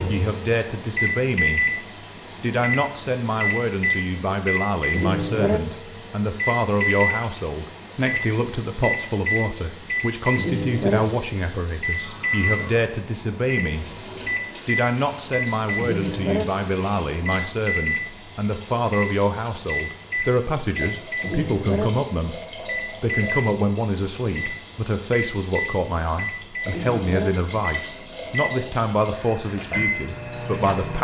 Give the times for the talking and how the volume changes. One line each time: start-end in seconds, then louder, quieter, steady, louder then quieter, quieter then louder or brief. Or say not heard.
0.1-1.8 brief
2.4-14.1 steady
14.7-30.9 steady.